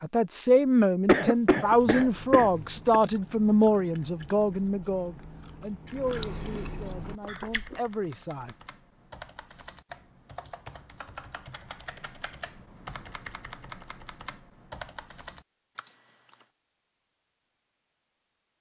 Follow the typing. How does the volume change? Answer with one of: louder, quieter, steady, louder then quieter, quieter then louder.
louder.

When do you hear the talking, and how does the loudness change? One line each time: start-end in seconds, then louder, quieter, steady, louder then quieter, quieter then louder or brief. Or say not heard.
0.0-8.6 quieter.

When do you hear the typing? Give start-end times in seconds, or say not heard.
7.0-16.5.